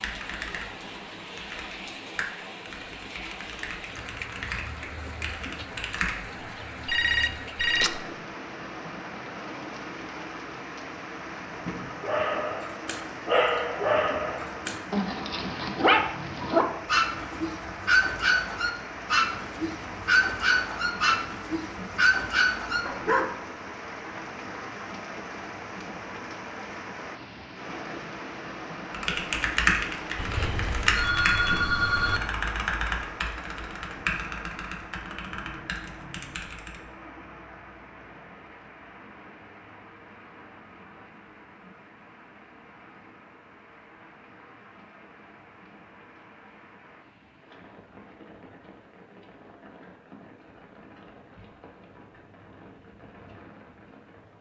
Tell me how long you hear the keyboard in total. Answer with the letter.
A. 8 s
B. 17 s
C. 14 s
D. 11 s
C.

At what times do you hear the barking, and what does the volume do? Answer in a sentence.
The barking can be heard from 11.9 to 23.3 s, at a steady volume.